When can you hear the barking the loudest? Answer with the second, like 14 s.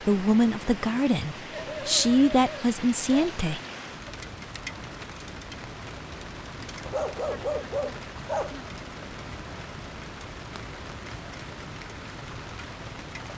8 s.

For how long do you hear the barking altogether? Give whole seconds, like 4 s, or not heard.
4 s.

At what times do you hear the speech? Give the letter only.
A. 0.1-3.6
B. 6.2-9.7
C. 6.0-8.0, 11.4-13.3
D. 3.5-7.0
A.